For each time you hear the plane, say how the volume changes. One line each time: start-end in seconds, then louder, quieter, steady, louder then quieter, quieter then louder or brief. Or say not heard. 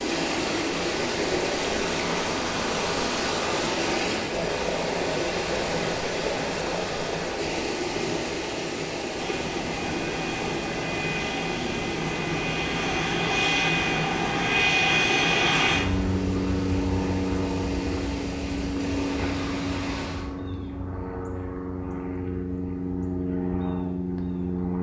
9.2-24.7 louder then quieter.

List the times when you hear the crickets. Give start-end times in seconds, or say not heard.
not heard.